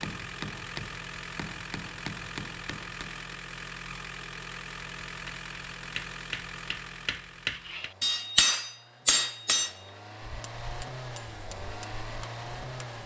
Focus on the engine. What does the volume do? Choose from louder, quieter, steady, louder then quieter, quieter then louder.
quieter then louder.